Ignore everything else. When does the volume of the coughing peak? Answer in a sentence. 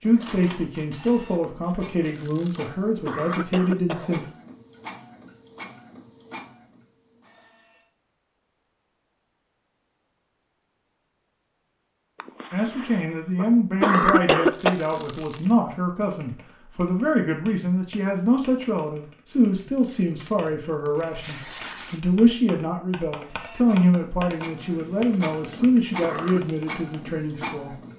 The volume of the coughing peaks at 14 seconds.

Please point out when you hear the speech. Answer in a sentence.
The speech can be heard from 0.0 to 4.2 s and from 12.5 to 27.8 s.